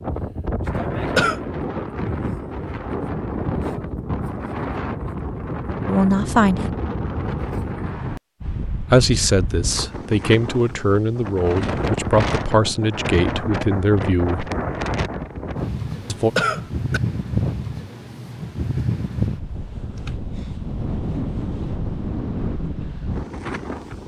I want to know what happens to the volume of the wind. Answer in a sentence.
The volume of the wind stays about the same.